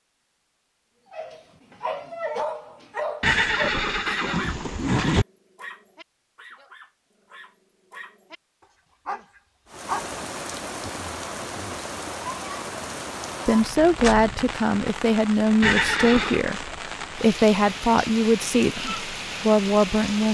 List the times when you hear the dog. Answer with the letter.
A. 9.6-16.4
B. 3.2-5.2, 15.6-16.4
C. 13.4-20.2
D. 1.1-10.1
D.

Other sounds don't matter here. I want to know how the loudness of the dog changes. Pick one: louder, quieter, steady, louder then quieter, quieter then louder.
quieter then louder.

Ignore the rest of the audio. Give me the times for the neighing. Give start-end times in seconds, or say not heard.
3.2-5.2, 15.6-16.4.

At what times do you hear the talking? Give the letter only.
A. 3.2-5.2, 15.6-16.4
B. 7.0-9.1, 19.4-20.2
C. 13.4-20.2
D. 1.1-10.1
C.